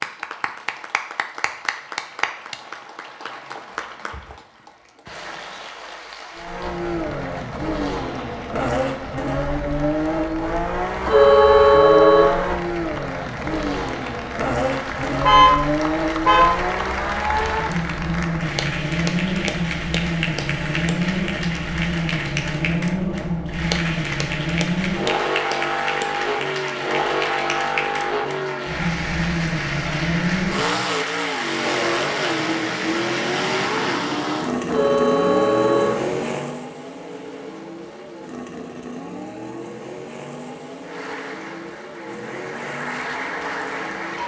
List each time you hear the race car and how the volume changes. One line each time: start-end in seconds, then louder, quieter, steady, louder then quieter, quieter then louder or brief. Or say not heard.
6.3-44.2 quieter.